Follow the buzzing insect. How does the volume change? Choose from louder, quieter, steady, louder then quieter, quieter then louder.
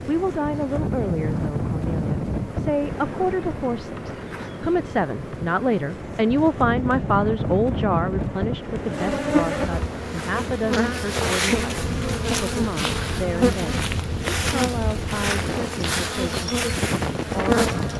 louder.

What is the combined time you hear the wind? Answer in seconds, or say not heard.
18 s.